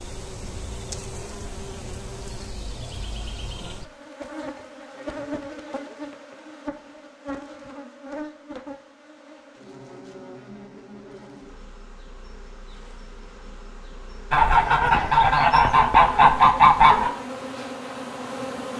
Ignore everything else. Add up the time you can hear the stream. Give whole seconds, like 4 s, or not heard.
not heard.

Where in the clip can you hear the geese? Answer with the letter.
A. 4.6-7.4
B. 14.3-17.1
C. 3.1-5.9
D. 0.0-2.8
B.